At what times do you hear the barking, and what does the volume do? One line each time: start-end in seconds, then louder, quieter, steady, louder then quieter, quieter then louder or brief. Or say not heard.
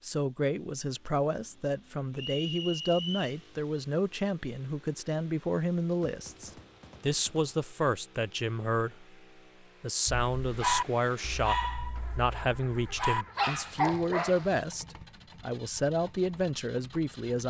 10.1-14.6 quieter then louder.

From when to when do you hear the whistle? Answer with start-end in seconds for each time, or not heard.
2.1-3.4.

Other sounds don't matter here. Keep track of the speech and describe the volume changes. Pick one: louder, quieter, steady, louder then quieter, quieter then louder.
steady.